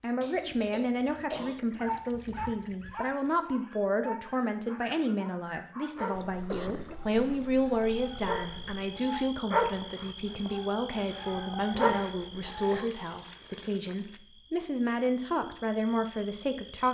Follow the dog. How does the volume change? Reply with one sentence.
The loudness of the dog goes down, then up.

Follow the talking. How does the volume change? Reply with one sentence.
The loudness of the talking stays about the same.